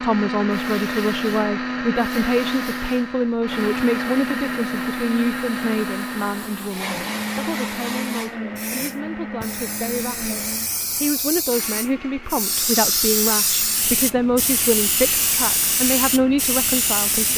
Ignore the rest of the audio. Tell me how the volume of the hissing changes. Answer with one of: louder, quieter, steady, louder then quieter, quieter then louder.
louder.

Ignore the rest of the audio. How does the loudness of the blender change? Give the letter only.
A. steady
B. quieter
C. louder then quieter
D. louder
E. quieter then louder
B.